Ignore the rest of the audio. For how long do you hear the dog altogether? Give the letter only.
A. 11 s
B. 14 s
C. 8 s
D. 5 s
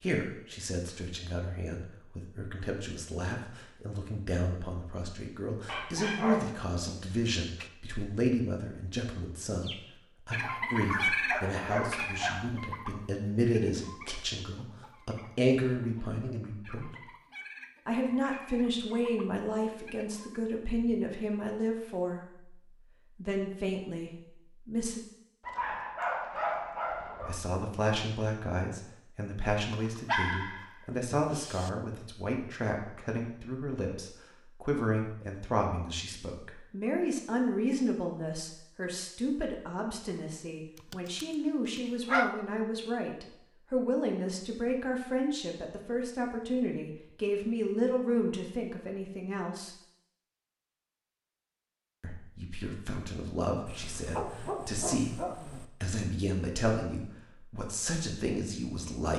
A.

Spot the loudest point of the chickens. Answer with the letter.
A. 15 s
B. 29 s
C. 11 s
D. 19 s
C.